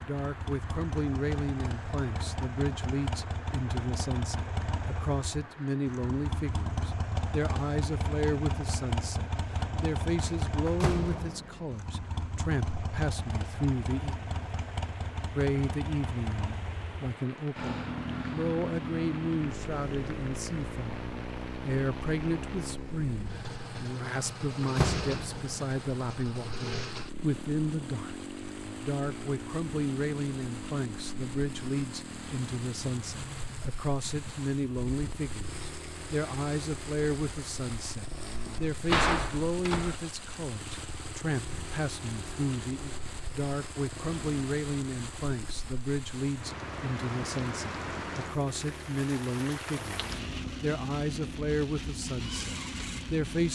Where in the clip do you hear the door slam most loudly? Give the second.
39 s.